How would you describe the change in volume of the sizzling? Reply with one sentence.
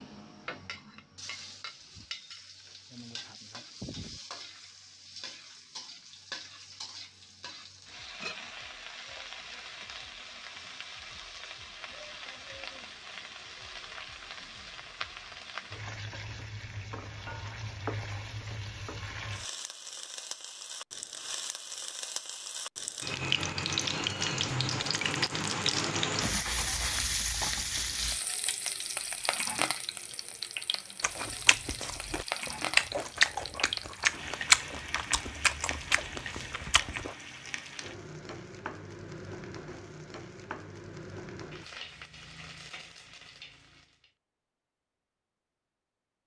The loudness of the sizzling goes up, then down.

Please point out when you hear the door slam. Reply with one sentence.
The door slam can't be heard in this clip.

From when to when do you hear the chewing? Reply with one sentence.
You can hear the chewing from 31.0 to 37.1 s.